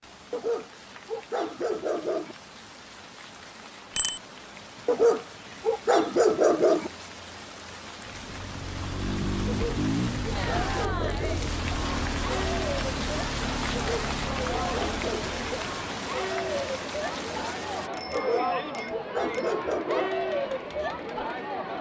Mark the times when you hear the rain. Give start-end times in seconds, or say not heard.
0.0-17.9.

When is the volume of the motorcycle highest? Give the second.
10 s.